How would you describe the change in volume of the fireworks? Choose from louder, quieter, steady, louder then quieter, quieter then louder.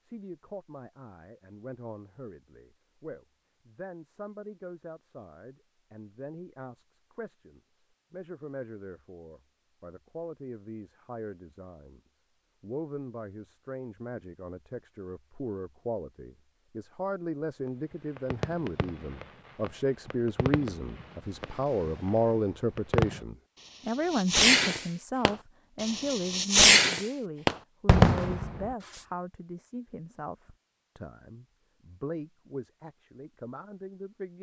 louder.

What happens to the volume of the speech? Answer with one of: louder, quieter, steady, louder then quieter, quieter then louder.
louder then quieter.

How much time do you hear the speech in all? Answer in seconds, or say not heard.
34 s.